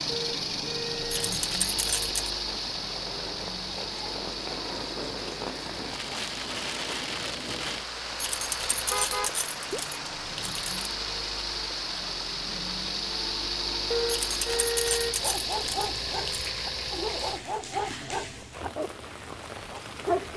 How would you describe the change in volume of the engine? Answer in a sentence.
The volume of the engine goes down, then up.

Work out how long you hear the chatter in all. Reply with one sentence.
You can't hear the chatter here.